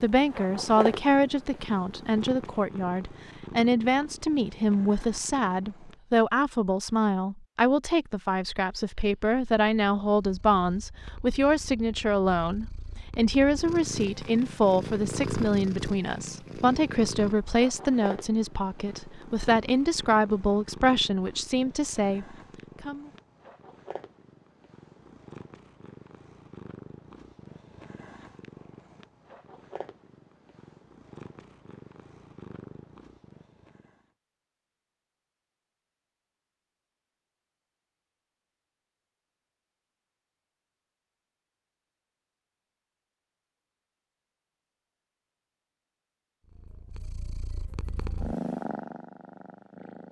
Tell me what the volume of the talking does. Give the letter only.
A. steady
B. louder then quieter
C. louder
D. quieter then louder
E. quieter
A.